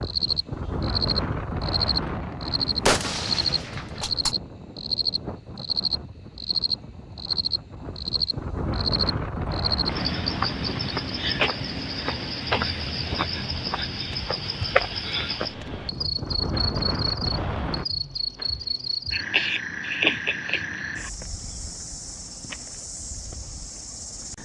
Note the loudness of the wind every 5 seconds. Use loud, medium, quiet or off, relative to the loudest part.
loud, loud, medium, loud, off.